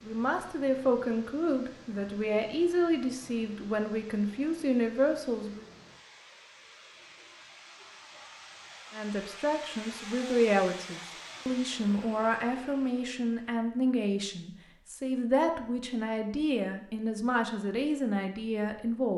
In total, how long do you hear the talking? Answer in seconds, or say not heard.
16 s.